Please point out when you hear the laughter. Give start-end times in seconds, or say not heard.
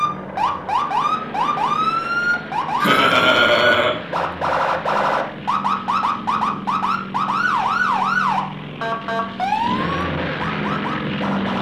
2.8-4.0.